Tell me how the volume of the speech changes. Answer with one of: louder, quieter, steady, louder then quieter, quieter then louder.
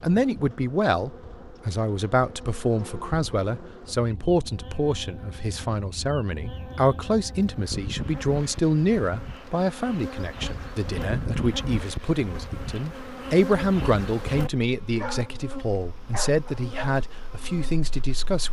steady.